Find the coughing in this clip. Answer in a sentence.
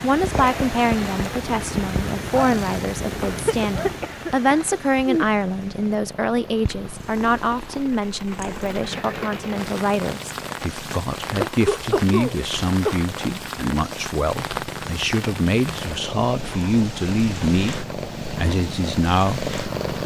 You can hear the coughing from 3.2 to 5.3 s and from 11.5 to 12.9 s.